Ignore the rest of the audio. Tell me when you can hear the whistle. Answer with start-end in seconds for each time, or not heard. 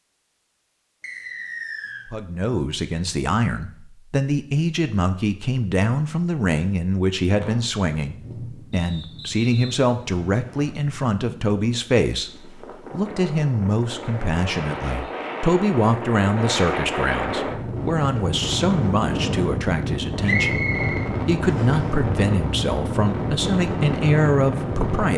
1.0-2.0, 8.7-10.8, 20.2-21.8.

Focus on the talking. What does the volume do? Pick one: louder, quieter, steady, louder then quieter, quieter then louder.
steady.